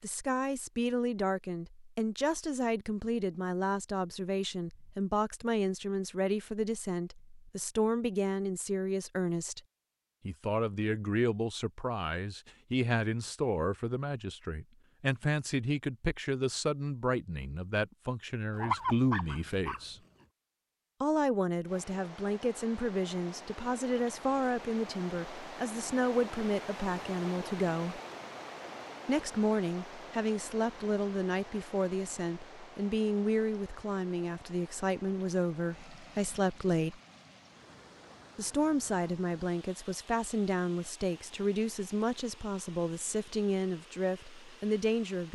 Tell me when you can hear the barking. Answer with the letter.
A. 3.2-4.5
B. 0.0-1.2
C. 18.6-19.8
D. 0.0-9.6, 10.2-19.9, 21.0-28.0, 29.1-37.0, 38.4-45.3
C.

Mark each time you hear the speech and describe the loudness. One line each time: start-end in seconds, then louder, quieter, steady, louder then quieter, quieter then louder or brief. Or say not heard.
0.0-9.6 steady
10.2-19.9 steady
21.0-28.0 steady
29.1-37.0 steady
38.4-45.3 steady.